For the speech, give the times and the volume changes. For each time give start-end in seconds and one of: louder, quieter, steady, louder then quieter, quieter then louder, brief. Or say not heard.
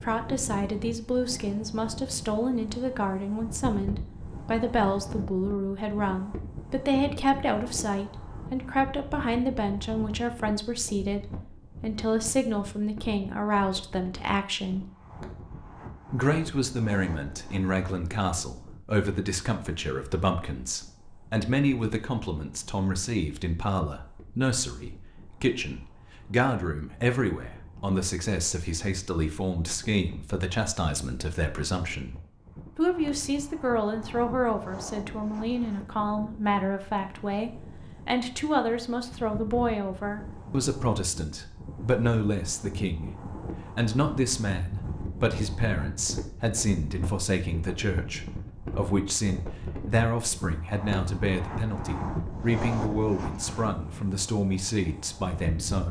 0.0-14.8 steady
16.1-32.1 steady
32.8-55.8 steady.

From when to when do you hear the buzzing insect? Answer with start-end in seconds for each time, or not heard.
not heard.